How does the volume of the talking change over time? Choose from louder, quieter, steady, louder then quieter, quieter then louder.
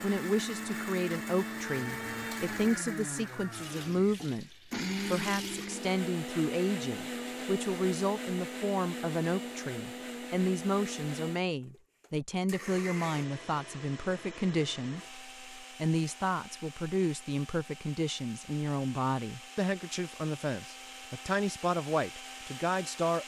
steady.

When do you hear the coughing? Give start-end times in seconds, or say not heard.
not heard.